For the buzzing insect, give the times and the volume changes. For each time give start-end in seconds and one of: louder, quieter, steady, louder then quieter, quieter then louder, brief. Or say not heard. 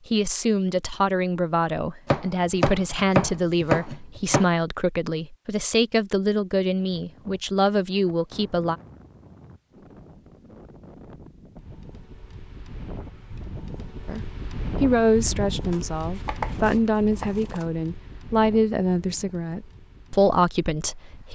not heard.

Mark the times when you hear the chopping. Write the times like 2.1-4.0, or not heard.
2.0-4.5, 15.7-17.6.